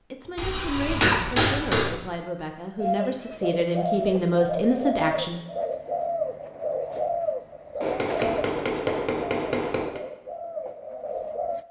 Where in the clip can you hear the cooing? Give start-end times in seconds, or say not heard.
2.8-11.6.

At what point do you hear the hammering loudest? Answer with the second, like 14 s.
1 s.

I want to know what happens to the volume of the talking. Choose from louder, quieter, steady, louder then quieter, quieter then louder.
louder.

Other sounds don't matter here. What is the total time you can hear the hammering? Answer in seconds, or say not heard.
4 s.